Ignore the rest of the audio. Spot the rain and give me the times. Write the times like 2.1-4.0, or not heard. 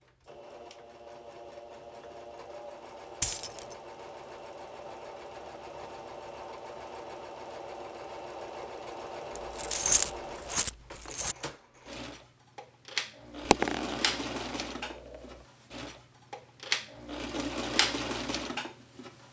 not heard.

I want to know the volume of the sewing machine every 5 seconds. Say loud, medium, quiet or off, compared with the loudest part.
medium, medium, loud, loud.